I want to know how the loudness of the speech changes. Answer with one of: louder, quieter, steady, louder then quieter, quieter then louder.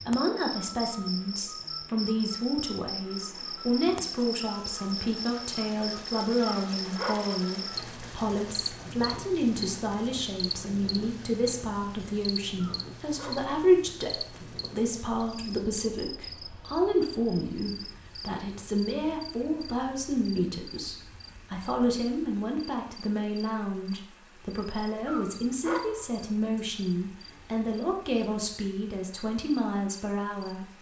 steady.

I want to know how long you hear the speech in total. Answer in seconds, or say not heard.
31 s.